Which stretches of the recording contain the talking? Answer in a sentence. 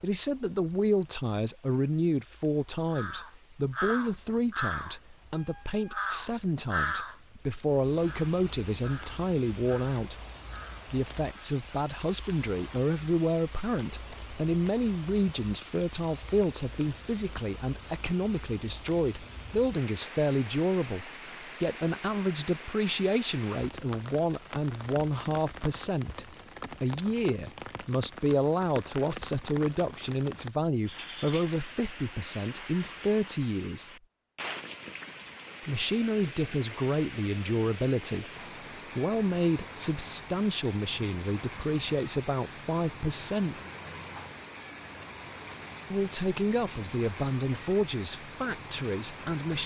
The talking can be heard from 0.0 to 10.2 s, from 10.9 to 33.9 s, from 35.6 to 38.3 s, from 39.0 to 43.6 s and from 45.9 to 49.6 s.